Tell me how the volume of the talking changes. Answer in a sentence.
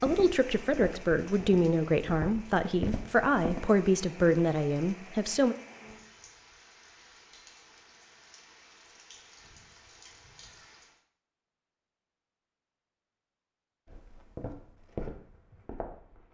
The volume of the talking stays about the same.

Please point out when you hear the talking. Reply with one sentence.
The talking can be heard from 0.0 to 5.5 s.